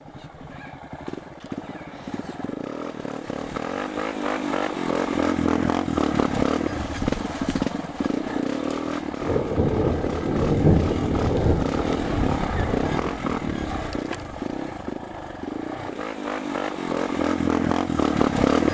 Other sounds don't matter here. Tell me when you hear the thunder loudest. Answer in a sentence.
The volume of the thunder peaks at 11 seconds.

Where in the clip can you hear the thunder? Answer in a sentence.
You can hear the thunder from 9.2 to 13.6 s.